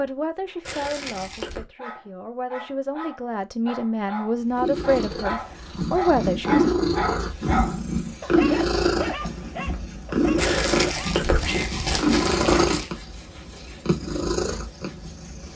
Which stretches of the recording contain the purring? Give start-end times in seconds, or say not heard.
4.5-15.5.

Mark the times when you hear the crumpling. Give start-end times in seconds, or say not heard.
0.7-1.6, 10.3-12.9.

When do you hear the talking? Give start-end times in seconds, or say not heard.
0.0-6.7.